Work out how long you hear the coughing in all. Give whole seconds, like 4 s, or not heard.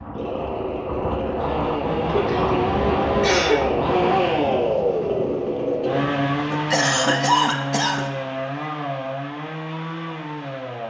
3 s.